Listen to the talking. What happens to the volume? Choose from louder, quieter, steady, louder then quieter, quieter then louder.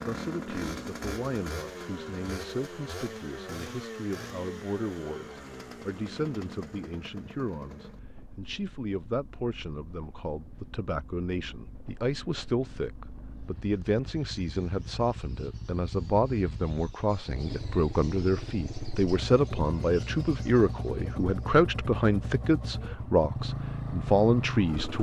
louder.